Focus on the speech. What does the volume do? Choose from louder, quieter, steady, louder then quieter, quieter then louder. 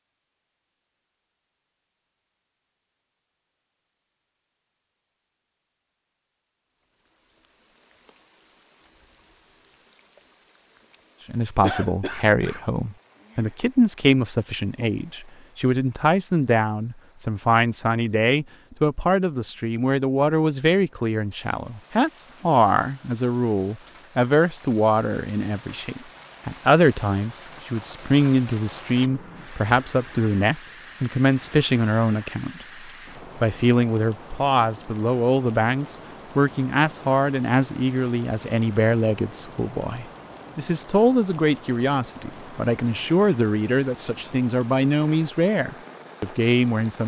steady.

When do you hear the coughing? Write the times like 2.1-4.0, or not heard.
11.6-12.6.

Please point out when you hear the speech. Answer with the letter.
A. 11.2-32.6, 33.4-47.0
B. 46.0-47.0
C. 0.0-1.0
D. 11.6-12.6
A.